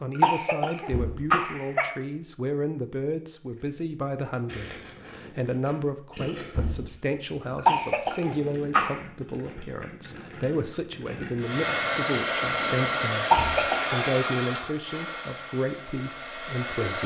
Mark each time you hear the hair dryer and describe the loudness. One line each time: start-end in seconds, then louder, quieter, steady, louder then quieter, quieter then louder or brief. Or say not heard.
11.4-17.0 quieter.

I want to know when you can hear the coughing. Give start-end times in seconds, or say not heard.
0.1-1.9, 7.7-9.0, 13.3-13.9.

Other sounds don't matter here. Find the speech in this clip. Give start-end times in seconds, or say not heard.
0.0-17.0.